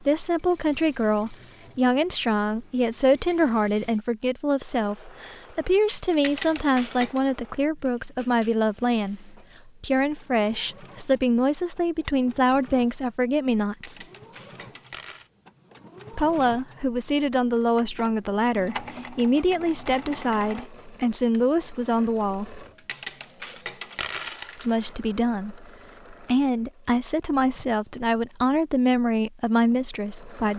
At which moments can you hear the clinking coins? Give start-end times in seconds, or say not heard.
5.9-7.2, 13.6-15.3, 22.6-24.9.